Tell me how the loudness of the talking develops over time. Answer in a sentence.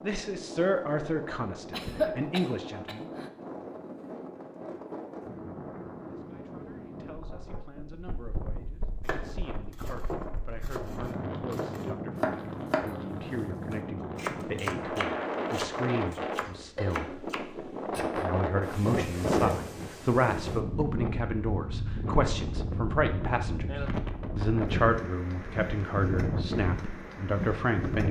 The loudness of the talking goes down, then up.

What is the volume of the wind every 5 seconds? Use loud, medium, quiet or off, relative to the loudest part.
medium, medium, medium, loud, loud, loud.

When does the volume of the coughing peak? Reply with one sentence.
The volume of the coughing peaks at 2 seconds.